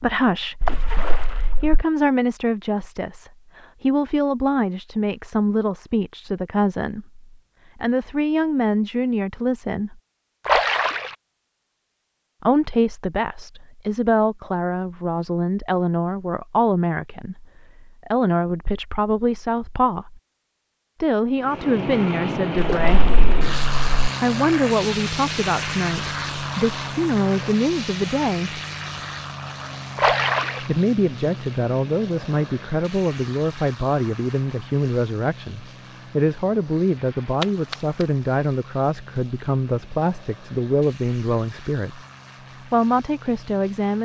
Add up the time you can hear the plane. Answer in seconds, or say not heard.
23 s.